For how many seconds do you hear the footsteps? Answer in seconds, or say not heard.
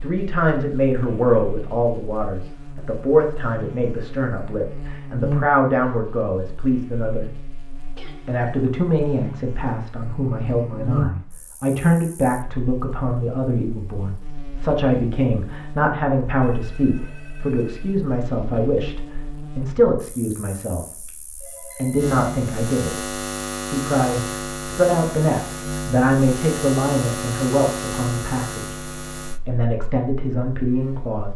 not heard.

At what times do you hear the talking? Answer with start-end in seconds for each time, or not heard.
0.0-7.3, 8.2-28.8, 29.4-31.3.